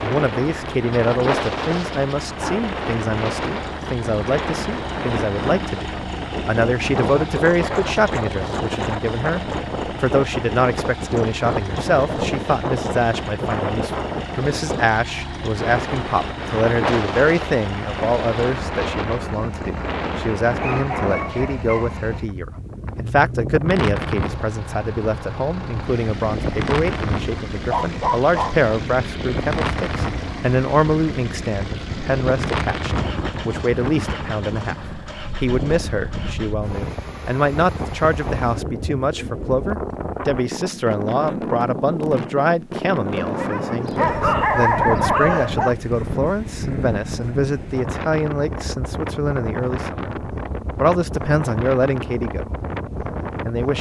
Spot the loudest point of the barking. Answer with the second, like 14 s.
45 s.